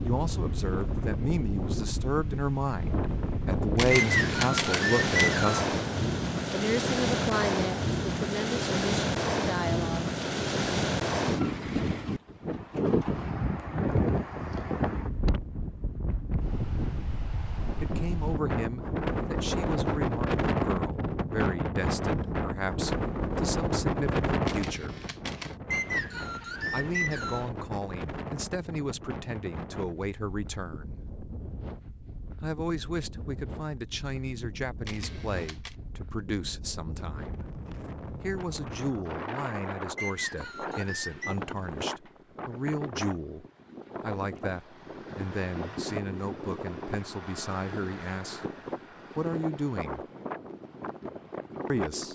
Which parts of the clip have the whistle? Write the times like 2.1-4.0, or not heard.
4.0-5.5, 25.7-27.5, 40.0-41.4.